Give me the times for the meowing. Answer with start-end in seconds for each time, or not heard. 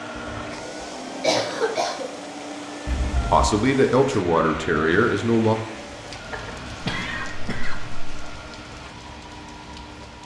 2.9-3.5, 6.3-7.3.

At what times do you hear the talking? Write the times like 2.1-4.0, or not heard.
3.2-5.5.